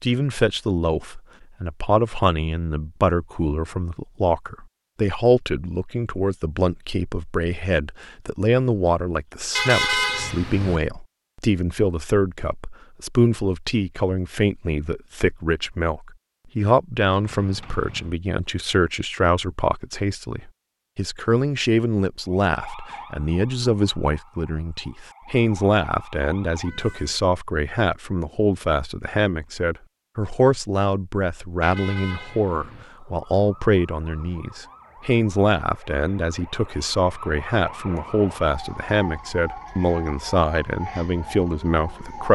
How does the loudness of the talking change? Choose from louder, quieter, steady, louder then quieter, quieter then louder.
steady.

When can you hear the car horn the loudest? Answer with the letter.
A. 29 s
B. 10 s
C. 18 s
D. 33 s
B.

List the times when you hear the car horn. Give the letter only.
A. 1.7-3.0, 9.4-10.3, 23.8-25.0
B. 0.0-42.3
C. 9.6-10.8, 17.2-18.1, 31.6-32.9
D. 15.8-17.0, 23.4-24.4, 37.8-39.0
C.